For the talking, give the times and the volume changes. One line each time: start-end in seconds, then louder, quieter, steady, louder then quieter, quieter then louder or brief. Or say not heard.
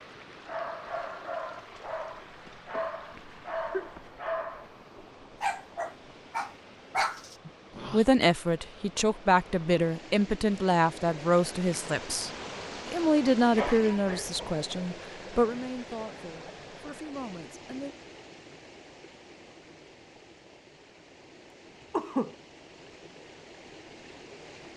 7.5-17.9 quieter.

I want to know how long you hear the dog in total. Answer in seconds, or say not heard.
8 s.